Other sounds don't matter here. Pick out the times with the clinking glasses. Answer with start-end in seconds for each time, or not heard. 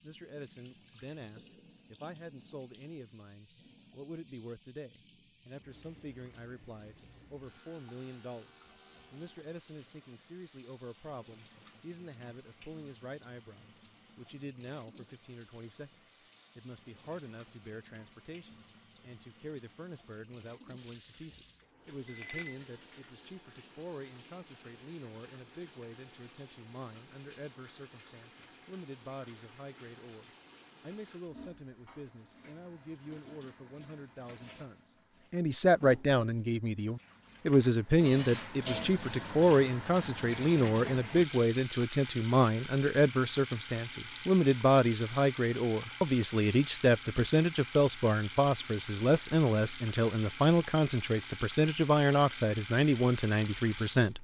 22.1-22.6.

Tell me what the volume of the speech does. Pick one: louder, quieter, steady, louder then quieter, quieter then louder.
louder.